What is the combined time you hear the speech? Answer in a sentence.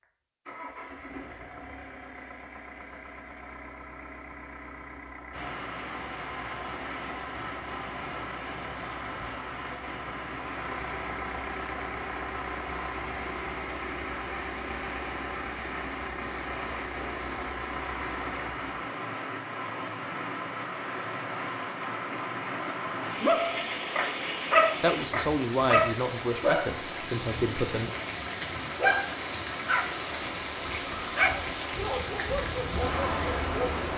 The speech can be heard for 3 seconds in total.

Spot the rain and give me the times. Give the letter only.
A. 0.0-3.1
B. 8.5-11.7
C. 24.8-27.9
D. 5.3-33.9
D.